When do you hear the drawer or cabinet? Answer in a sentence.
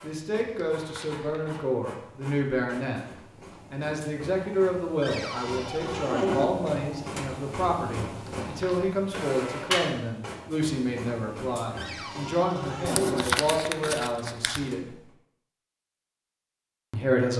The drawer or cabinet can be heard from 5.0 to 6.5 s and from 11.8 to 13.3 s.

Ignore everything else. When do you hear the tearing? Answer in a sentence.
You can hear the tearing from 0.5 to 1.7 s, from 8.2 to 8.8 s and from 12.8 to 14.7 s.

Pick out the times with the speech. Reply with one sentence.
The speech can be heard from 0.0 to 3.0 s, from 3.7 to 14.9 s and from 16.9 to 17.3 s.